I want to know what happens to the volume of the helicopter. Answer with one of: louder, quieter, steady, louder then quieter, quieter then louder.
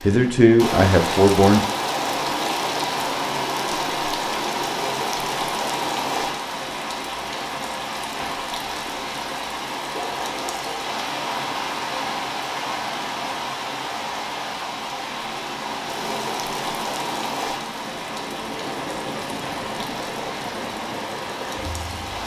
louder.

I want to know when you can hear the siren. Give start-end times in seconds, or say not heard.
not heard.